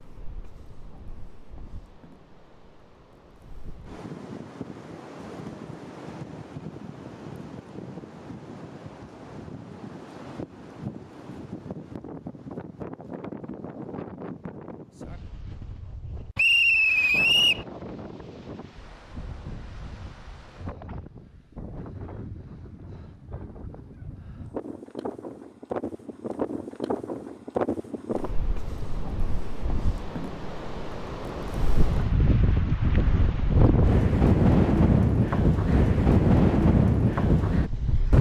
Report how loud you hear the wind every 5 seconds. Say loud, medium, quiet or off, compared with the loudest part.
quiet, quiet, quiet, quiet, quiet, medium, loud, loud.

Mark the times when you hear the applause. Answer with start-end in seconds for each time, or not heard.
not heard.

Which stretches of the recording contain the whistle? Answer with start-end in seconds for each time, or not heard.
16.4-17.6.